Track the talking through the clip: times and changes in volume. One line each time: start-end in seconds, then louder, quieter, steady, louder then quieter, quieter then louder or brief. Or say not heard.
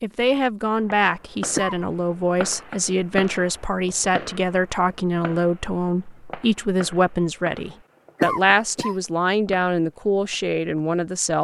0.0-11.3 steady.